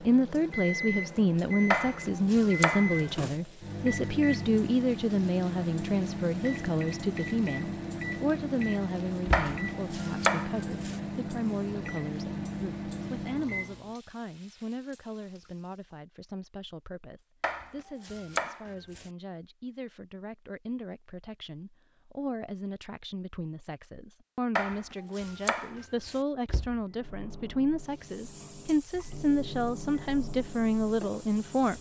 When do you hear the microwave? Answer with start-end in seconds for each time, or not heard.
0.0-13.9, 26.9-31.7.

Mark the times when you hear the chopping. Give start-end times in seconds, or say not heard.
1.7-3.4, 9.3-10.9, 17.4-19.1, 24.6-26.2.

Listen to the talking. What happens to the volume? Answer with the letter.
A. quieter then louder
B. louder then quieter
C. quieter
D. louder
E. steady
A.